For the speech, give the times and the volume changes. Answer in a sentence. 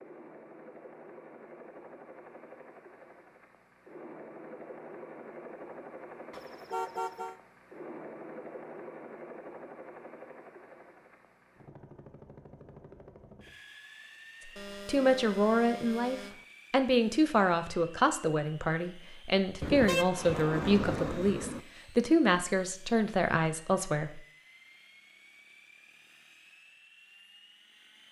You can hear the speech from 14.8 to 24.2 s, at a steady volume.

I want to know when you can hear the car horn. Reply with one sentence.
You can hear the car horn from 6.3 to 7.3 s, from 14.6 to 16.4 s and from 19.6 to 21.6 s.